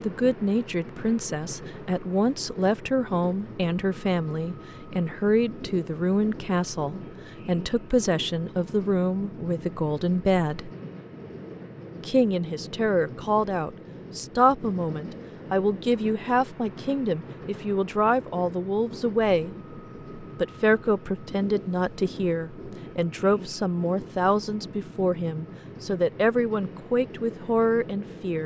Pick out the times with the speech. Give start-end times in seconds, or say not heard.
0.0-10.7, 12.0-19.6, 20.2-28.4.